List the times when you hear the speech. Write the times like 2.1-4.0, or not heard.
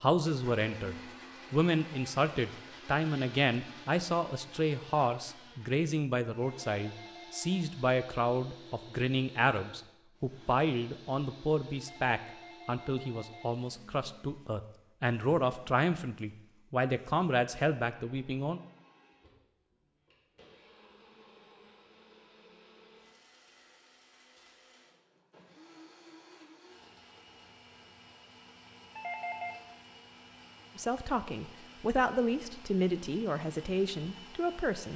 0.0-18.6, 30.8-34.9.